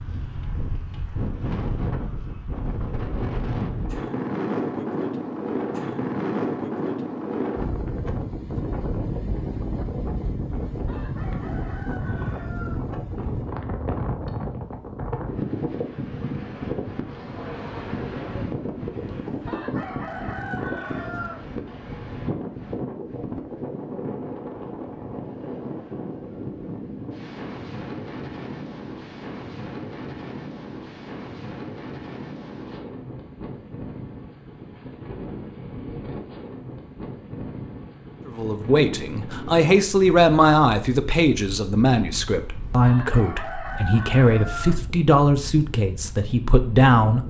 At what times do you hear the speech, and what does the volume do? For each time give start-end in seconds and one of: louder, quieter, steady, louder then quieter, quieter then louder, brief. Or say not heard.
38.2-47.2 steady.